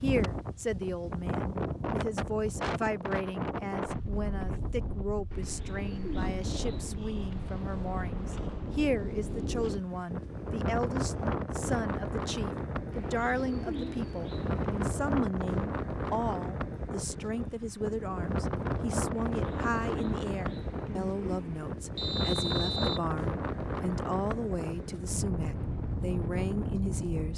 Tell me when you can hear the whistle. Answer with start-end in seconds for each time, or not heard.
21.9-23.1.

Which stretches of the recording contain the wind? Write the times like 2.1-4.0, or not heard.
0.0-27.3.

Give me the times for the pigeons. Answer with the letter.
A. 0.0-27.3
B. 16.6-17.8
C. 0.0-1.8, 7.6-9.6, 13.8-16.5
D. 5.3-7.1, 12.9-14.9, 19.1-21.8
D.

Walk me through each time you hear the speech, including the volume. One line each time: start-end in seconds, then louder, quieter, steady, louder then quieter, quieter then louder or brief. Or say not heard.
0.0-27.3 steady.